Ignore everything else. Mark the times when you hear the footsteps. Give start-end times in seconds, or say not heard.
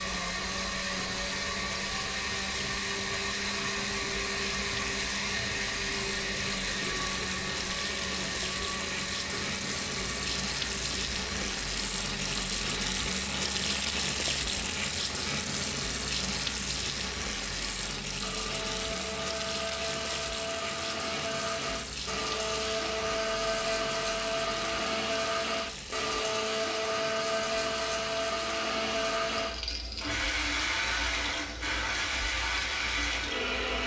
not heard.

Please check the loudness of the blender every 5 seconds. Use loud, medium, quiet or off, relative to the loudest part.
loud, loud, medium, medium, loud, loud, loud.